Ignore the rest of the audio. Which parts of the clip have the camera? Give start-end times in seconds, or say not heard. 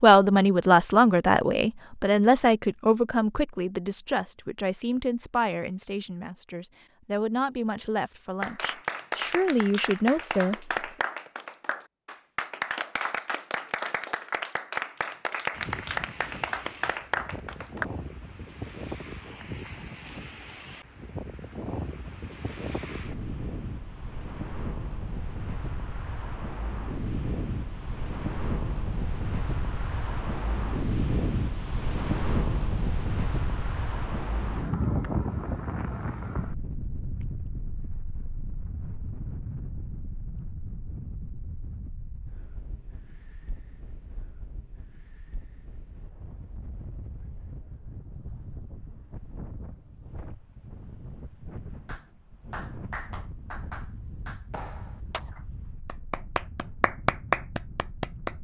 not heard.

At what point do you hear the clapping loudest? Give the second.
57 s.